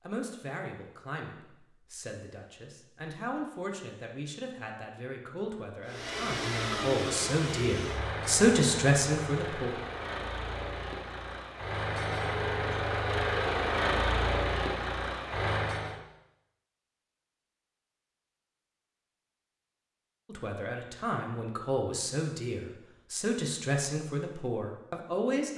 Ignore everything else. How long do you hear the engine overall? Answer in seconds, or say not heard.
10 s.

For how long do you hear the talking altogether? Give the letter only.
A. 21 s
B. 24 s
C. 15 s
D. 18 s
C.